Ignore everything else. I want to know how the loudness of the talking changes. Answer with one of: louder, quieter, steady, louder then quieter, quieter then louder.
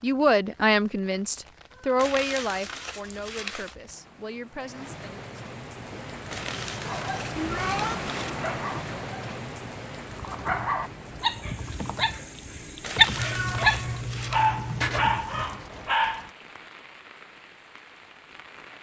quieter.